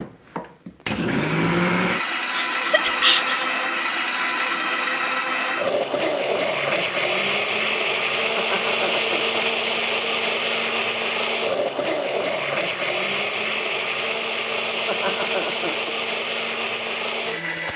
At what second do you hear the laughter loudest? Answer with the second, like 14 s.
3 s.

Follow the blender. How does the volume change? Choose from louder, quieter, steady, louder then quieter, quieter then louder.
steady.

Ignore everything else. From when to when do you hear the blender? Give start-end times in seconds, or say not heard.
0.0-17.7.